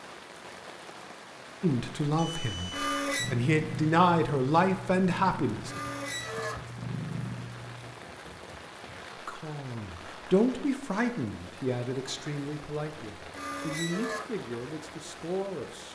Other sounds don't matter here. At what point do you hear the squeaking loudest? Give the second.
3 s.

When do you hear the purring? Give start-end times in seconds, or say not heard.
3.1-8.0.